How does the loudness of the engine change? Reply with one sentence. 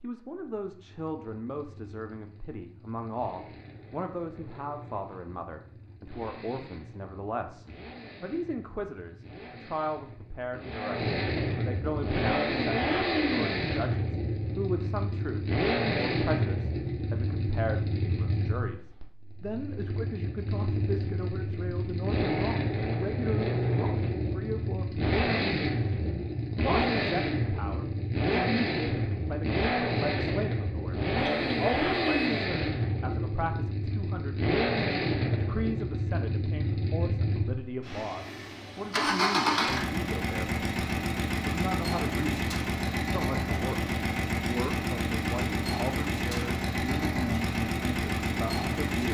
The volume of the engine goes up.